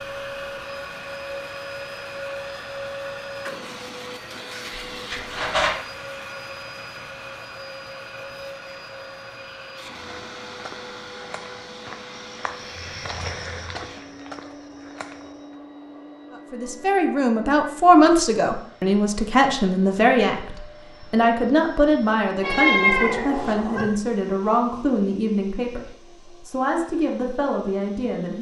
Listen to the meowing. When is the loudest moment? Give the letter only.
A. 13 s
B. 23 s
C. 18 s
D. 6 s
B.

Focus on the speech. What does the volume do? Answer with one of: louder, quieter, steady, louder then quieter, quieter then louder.
quieter.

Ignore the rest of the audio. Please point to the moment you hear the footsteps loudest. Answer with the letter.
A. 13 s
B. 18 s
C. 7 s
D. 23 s
A.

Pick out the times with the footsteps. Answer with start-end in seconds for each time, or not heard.
10.2-15.6.